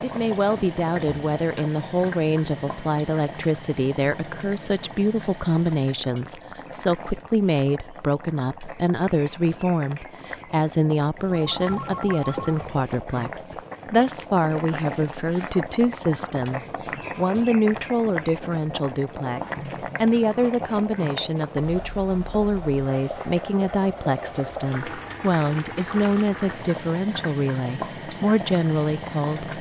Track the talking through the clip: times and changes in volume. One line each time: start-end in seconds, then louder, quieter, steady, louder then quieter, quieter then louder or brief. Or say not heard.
0.0-29.5 steady.